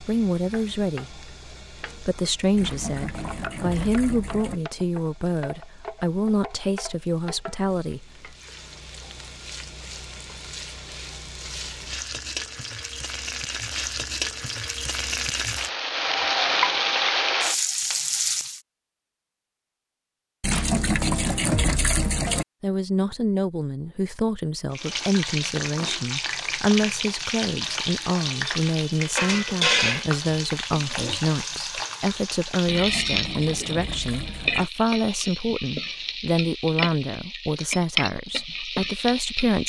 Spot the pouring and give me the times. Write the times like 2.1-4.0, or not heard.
2.5-4.6, 20.4-22.4, 32.6-34.7.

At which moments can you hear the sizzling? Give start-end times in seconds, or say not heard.
0.0-18.6, 24.7-39.6.